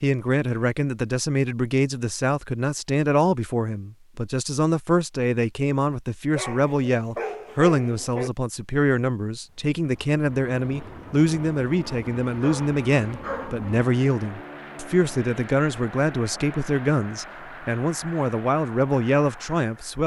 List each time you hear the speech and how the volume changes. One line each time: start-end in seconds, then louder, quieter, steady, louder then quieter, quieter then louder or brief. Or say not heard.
0.0-20.0 steady.